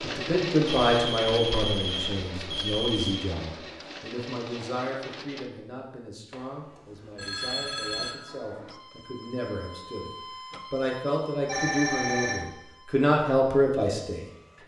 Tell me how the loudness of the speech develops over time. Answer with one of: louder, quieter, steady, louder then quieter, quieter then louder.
quieter then louder.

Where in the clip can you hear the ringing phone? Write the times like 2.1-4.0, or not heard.
0.7-3.2, 6.3-8.2, 11.4-12.4.